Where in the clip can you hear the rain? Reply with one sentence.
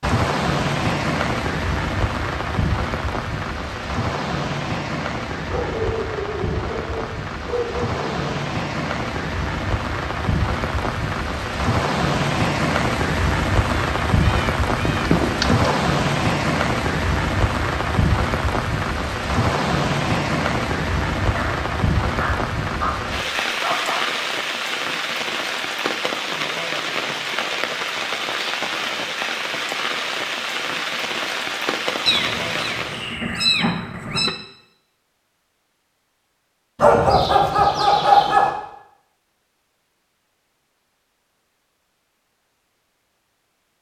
The rain can be heard from 0.0 to 33.1 s.